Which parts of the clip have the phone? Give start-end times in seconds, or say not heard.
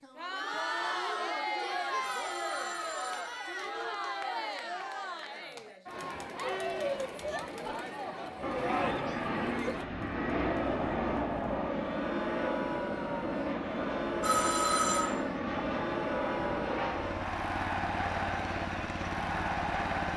2.0-4.2, 14.2-15.1.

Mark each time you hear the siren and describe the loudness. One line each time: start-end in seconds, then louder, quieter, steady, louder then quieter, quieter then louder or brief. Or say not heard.
not heard.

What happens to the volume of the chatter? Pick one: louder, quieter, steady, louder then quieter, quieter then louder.
steady.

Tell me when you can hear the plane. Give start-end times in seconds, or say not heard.
8.4-20.1.